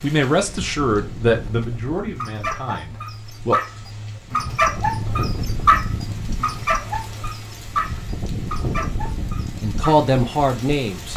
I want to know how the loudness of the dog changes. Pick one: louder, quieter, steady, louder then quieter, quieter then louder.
louder then quieter.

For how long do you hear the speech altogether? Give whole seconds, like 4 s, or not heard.
5 s.